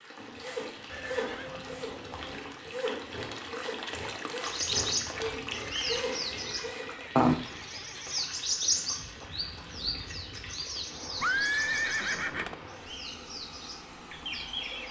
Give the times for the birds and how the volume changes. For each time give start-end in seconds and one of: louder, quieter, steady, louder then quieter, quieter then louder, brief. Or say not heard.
4.4-14.8 louder then quieter.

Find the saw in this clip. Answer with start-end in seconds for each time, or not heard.
0.1-7.2.